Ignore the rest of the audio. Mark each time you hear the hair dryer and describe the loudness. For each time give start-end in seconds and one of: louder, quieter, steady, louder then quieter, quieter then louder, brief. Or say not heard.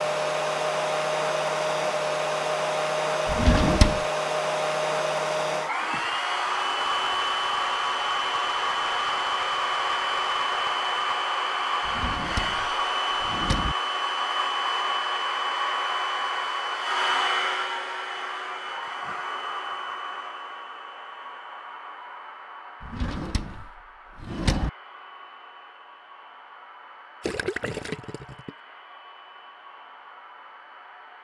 0.0-31.1 quieter.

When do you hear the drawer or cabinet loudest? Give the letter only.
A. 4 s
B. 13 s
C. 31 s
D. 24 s
A.